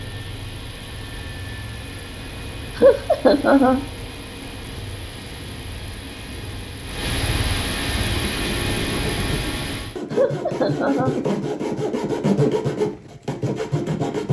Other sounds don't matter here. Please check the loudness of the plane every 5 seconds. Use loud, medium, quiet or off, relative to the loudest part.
medium, loud, off.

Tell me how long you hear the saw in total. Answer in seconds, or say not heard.
6 s.